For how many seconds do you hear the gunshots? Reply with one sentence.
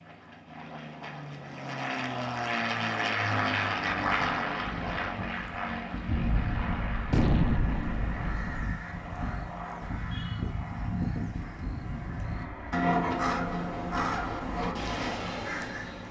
You can hear the gunshots for 3 seconds altogether.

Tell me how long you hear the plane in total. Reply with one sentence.
The plane can be heard for 16 seconds in total.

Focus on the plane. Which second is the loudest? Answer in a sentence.
The volume of the plane peaks at 4 seconds.